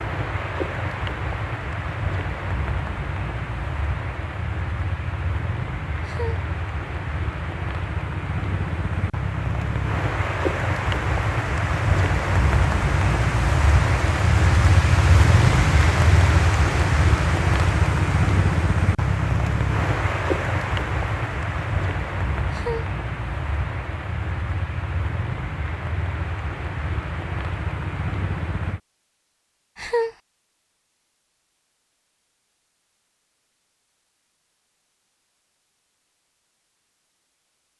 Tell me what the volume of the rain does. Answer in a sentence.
The loudness of the rain goes up, then down.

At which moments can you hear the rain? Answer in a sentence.
You can hear the rain from 0.0 to 28.8 s.